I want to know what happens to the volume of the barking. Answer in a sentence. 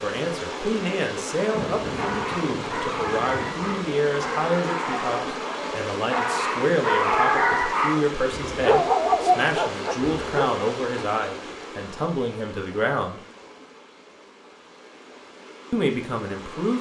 The loudness of the barking goes up.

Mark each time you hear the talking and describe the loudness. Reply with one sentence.
You can hear the talking from 0.0 to 13.2 s, at a steady volume; and briefly from 15.7 to 16.7 s.